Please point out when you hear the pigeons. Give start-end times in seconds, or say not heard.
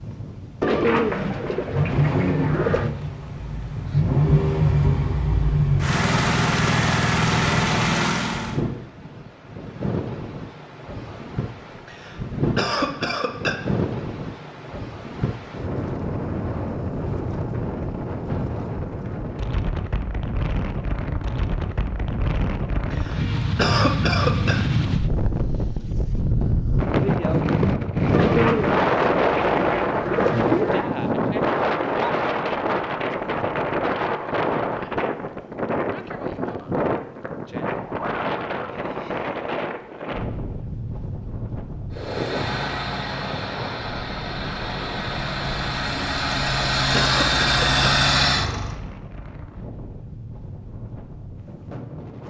0.6-3.0, 28.1-30.9.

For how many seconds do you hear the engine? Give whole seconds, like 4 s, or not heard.
14 s.